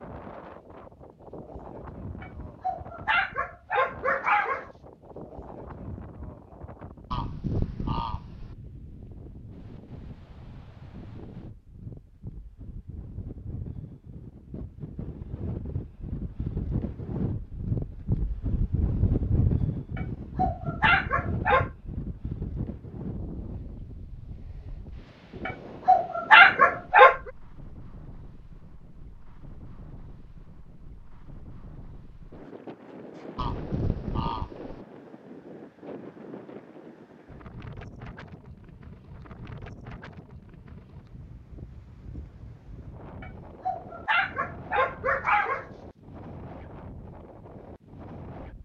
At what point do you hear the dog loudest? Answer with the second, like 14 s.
26 s.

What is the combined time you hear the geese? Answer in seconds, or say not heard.
3 s.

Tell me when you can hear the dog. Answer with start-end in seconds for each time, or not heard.
2.2-4.7, 19.9-21.7, 25.4-27.2, 43.2-45.6.